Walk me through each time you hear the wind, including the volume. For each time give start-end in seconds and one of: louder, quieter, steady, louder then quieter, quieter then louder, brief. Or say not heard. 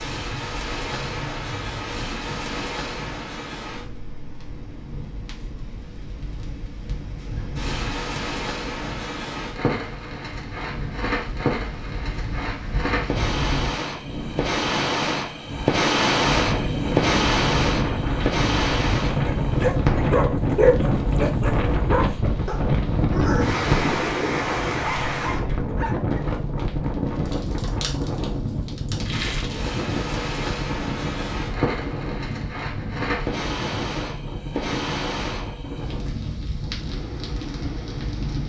0.0-38.4 louder then quieter.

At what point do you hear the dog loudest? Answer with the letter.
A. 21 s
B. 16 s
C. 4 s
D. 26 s
A.